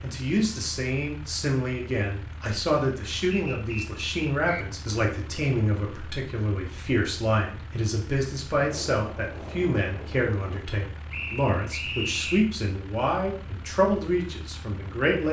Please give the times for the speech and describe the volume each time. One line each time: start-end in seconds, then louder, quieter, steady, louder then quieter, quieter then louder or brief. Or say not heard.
0.0-15.2 steady.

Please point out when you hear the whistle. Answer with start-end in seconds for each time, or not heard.
3.3-4.7, 11.1-12.4.